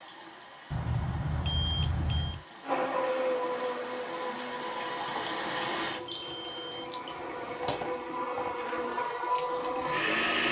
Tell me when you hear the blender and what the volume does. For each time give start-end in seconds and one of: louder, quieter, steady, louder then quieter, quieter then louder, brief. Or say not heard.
2.6-10.4 quieter then louder.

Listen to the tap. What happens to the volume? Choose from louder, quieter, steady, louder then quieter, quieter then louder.
louder then quieter.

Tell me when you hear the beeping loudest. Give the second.
2 s.